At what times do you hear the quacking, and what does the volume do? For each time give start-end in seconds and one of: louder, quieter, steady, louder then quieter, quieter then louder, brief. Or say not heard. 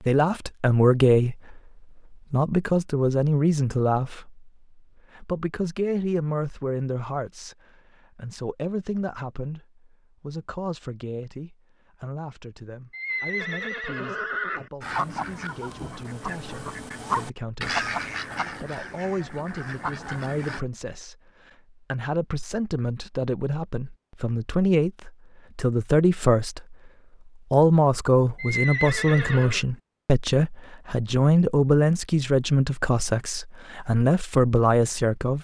14.8-20.6 louder then quieter.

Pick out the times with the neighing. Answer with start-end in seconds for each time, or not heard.
12.9-14.7, 28.4-29.6.